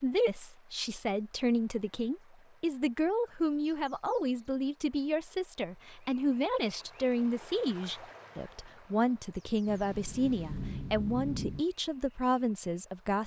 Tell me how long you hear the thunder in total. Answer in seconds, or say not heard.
2 s.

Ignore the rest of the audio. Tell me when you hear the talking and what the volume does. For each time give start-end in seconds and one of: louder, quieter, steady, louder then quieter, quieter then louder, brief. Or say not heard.
0.0-13.2 steady.